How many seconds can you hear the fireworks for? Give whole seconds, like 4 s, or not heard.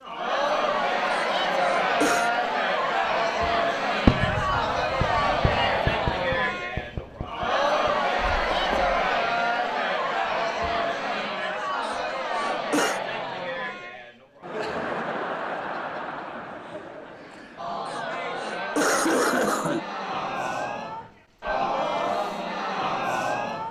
5 s.